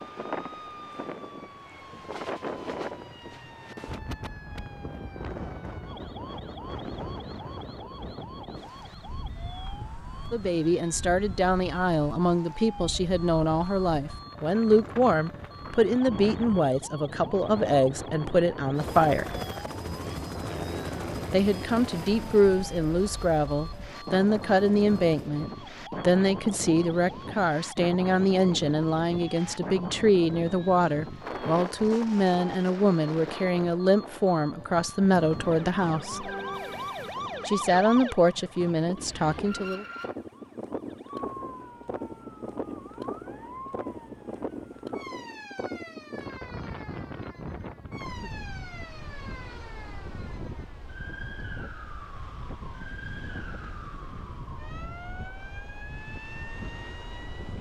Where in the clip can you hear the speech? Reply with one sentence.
You can hear the speech from 10.3 to 19.3 s, from 21.3 to 36.3 s and from 37.5 to 39.9 s.